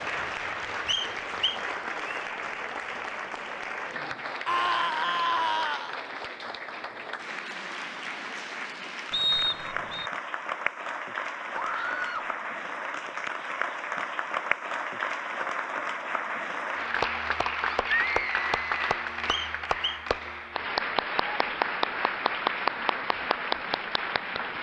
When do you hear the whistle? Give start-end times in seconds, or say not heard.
0.8-2.2, 9.1-10.1, 19.2-20.0.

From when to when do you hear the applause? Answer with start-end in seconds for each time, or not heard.
0.0-24.5.